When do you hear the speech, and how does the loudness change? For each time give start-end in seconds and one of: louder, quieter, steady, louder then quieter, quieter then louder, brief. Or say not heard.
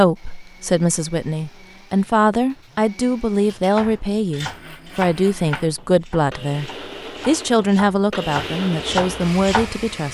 0.0-10.0 steady.